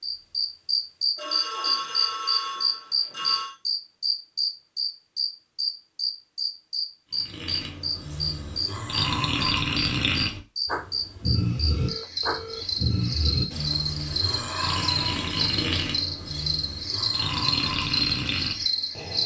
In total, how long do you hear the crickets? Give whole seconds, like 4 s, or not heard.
19 s.